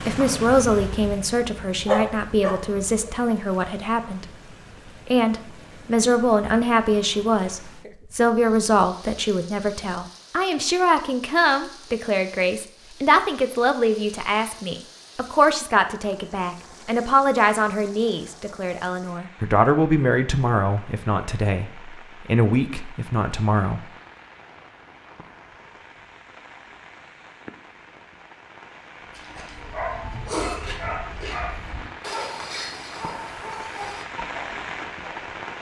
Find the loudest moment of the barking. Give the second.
2 s.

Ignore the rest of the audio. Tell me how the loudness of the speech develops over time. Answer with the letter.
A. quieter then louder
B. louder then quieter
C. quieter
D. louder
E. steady
E.